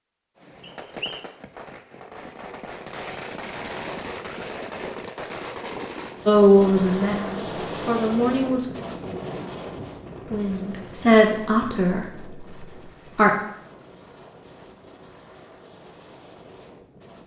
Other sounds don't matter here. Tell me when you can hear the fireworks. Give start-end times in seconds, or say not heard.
0.3-6.2.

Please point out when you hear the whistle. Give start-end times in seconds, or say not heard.
0.6-1.2.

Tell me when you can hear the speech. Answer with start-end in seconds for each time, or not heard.
6.2-8.7, 10.3-13.3.